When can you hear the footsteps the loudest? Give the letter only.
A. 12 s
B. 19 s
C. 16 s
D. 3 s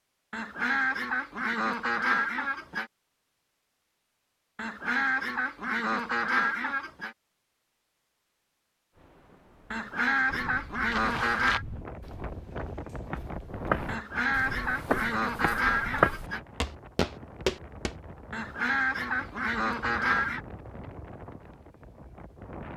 C.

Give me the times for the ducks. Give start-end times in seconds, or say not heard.
0.3-2.9, 4.5-7.2, 9.7-11.7, 13.8-16.4, 18.3-20.4.